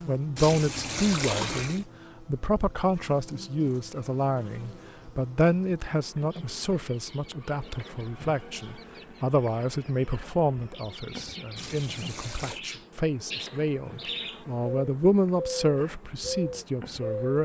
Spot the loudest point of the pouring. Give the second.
1 s.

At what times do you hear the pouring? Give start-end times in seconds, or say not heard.
0.3-1.9, 11.6-12.6.